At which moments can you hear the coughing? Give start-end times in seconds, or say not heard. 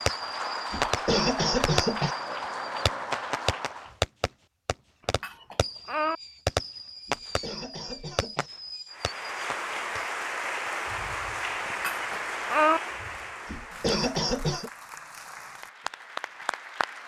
0.7-2.1, 7.0-8.5, 13.4-14.7.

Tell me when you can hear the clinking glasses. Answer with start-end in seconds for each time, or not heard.
5.0-6.2, 11.7-12.8.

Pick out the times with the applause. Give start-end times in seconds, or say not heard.
0.0-4.0, 8.9-17.0.